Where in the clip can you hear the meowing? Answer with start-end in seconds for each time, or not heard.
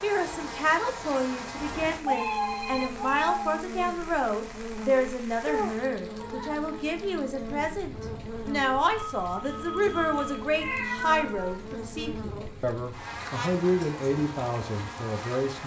2.0-3.5, 5.5-6.7, 10.6-11.7.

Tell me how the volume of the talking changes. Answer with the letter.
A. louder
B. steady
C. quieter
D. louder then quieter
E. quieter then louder
B.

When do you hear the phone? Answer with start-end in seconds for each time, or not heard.
2.1-3.2, 9.1-10.5.